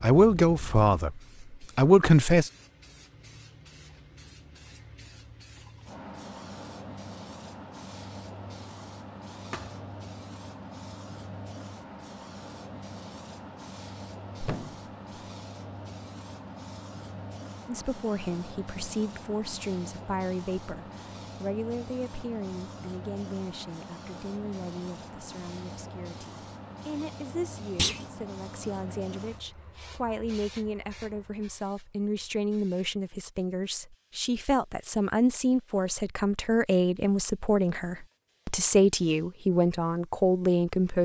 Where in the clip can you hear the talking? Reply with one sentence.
The talking can be heard from 0.0 to 2.5 s and from 17.6 to 41.0 s.